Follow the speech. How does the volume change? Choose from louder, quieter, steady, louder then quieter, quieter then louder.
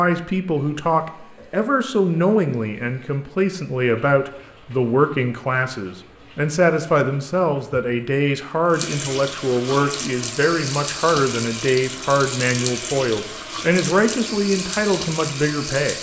steady.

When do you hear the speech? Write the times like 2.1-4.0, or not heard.
0.0-15.9.